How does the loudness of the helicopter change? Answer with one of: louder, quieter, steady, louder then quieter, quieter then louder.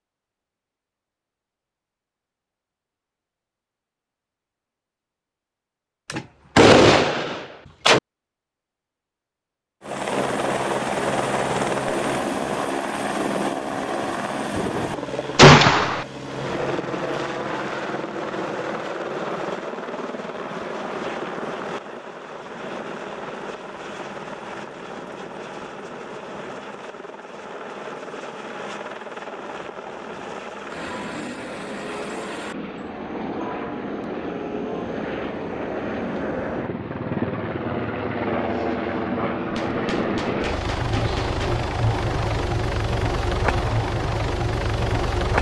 quieter then louder.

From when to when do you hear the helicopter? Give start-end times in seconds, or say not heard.
9.8-45.3.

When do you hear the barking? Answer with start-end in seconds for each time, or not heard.
not heard.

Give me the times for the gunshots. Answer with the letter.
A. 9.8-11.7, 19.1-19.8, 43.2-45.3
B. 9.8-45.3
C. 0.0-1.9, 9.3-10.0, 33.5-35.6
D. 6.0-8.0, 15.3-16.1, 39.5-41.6
D.